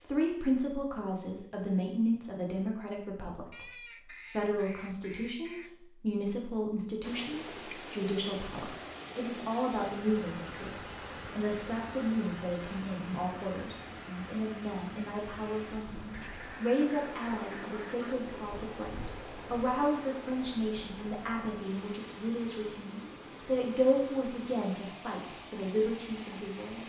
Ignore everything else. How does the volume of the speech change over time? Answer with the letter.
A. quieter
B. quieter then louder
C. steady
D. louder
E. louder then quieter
C.